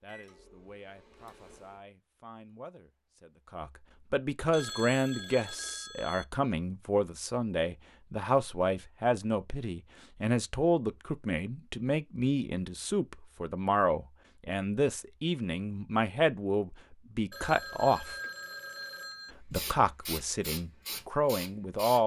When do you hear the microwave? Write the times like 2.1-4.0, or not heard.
0.0-1.8.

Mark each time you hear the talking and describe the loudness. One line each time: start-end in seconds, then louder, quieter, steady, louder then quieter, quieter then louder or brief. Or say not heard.
0.0-18.1 louder
19.4-22.0 brief.